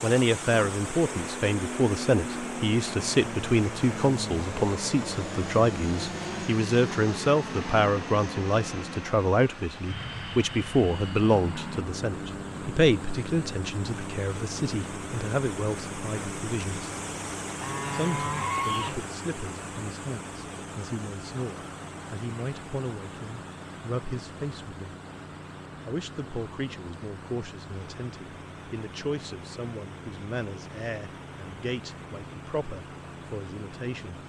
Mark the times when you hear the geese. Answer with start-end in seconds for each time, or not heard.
17.6-19.1.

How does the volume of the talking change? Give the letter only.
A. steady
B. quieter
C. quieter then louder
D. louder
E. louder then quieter
B.